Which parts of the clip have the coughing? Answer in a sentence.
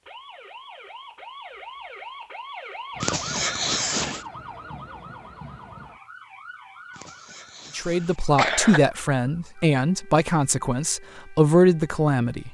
The coughing can be heard from 3.0 to 4.2 s and from 7.0 to 8.8 s.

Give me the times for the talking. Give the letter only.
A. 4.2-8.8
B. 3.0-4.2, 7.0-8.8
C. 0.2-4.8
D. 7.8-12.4
D.